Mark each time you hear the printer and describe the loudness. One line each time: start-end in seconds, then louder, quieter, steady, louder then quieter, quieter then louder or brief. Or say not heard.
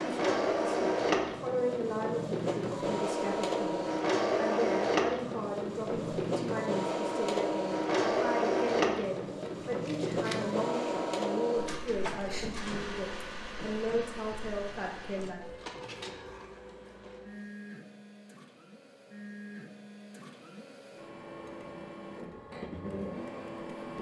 0.0-23.9 quieter.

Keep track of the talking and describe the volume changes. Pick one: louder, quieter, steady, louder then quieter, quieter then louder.
steady.